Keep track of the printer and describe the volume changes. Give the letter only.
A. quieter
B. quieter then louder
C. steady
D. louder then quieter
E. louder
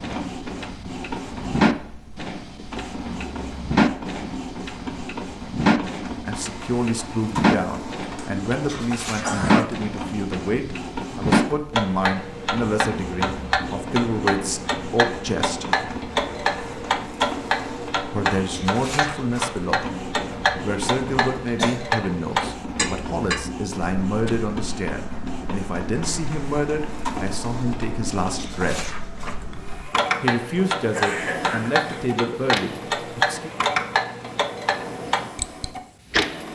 C.